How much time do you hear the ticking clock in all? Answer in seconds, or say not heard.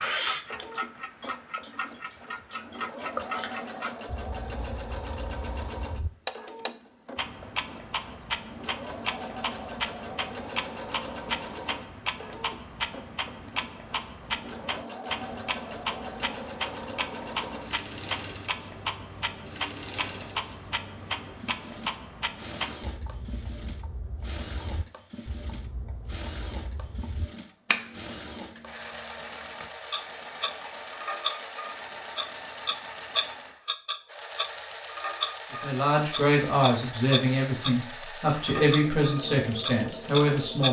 40 s.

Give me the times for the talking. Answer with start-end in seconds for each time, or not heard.
35.5-40.6.